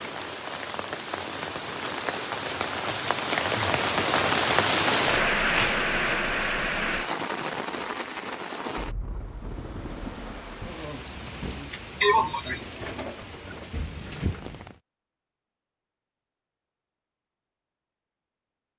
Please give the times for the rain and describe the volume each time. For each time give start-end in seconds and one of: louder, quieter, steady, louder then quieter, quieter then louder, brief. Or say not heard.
0.0-14.8 louder then quieter.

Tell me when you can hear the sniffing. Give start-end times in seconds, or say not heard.
1.7-2.3, 12.0-12.6.